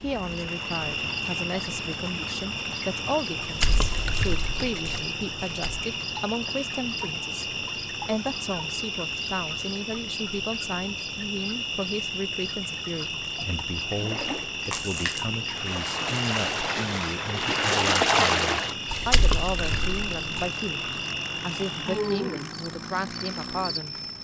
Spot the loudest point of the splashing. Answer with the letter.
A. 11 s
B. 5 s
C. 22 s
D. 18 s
D.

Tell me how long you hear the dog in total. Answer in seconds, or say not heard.
not heard.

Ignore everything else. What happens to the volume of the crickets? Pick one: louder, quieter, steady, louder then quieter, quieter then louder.
steady.